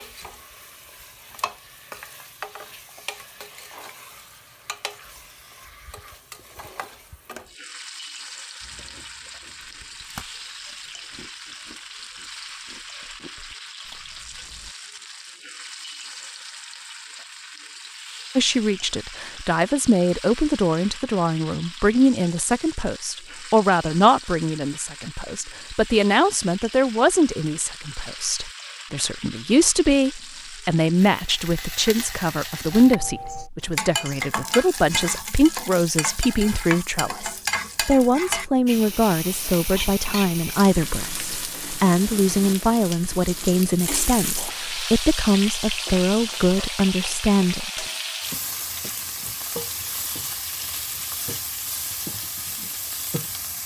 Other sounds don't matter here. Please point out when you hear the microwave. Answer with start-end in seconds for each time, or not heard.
not heard.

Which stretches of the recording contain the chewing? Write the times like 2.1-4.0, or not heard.
8.6-14.7.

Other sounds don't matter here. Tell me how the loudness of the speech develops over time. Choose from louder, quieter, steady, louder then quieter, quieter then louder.
steady.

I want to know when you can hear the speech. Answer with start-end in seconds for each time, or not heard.
18.4-47.9.